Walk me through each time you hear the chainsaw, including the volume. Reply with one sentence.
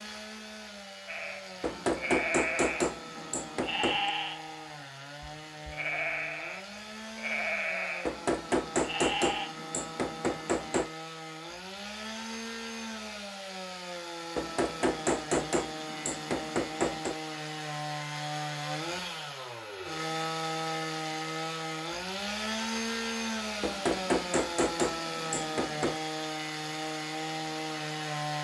You can hear the chainsaw from 0.0 to 28.4 s, getting louder.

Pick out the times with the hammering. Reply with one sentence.
The hammering can be heard from 1.6 to 4.1 s, from 8.1 to 10.9 s, from 14.3 to 17.1 s and from 23.6 to 25.9 s.